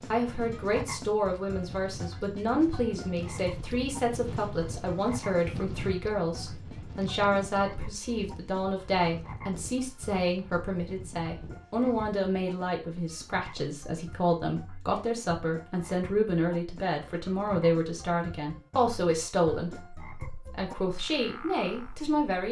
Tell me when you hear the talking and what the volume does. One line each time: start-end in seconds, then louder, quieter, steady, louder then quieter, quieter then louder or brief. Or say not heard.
0.1-22.4 steady.